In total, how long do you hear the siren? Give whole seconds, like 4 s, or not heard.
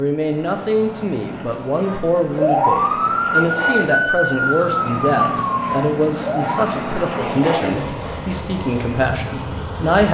5 s.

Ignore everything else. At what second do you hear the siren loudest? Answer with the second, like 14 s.
3 s.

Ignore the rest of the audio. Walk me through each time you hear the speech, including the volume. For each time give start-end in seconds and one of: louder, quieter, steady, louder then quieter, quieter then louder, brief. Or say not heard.
0.0-10.0 steady.